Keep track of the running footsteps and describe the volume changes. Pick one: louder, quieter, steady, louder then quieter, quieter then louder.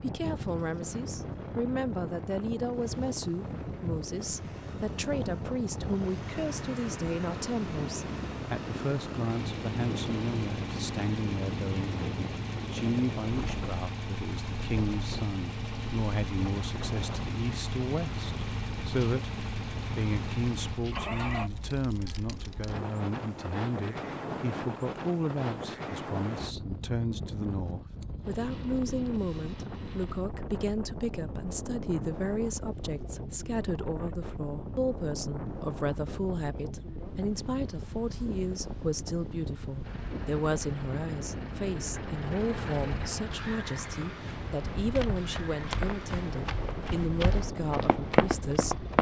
louder.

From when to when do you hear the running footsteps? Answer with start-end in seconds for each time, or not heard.
44.8-48.9.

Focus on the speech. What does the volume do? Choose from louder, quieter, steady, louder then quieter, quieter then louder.
steady.